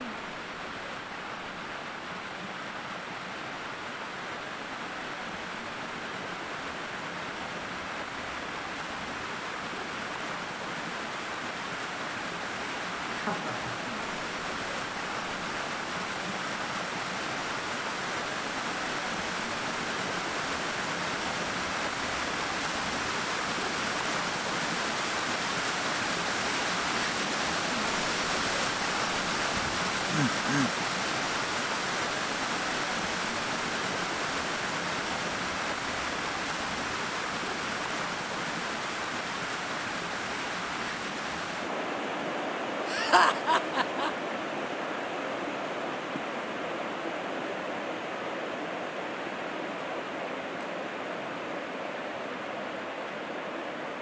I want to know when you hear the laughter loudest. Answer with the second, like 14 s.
43 s.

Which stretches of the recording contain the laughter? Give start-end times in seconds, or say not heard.
13.2-13.8, 29.5-30.7, 42.9-44.1.